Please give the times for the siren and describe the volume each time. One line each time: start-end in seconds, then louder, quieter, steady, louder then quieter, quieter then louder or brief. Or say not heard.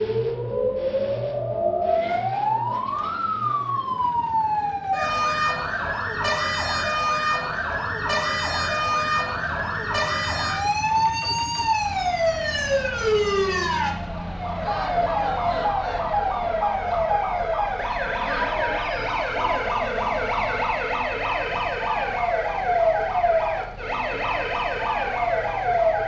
0.0-26.0 steady.